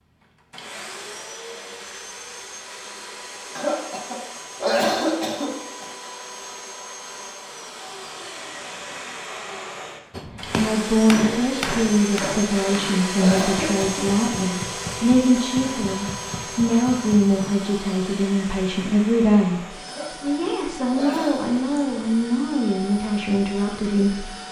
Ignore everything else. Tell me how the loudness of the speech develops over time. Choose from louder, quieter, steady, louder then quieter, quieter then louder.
steady.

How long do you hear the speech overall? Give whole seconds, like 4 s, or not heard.
14 s.